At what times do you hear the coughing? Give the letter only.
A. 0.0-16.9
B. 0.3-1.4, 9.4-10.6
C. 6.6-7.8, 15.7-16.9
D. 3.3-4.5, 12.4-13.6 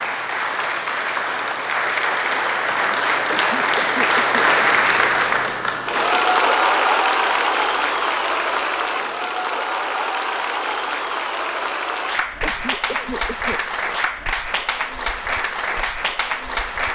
D.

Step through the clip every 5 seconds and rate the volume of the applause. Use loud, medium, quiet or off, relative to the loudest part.
loud, loud, medium, medium.